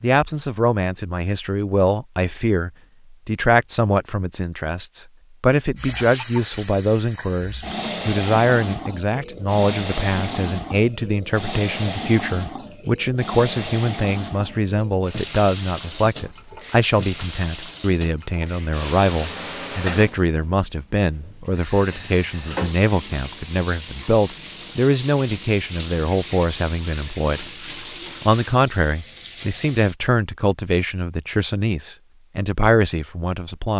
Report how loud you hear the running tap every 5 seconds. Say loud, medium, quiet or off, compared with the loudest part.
off, loud, loud, loud, medium, medium, off.